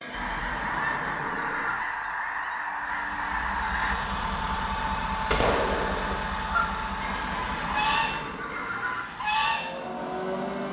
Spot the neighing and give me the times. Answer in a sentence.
The neighing can be heard from 0.0 to 1.8 s and from 7.0 to 9.1 s.